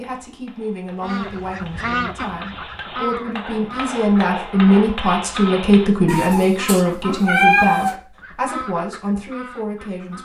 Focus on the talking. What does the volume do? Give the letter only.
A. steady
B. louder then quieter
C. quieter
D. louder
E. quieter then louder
B.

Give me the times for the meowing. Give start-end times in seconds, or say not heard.
6.0-8.0.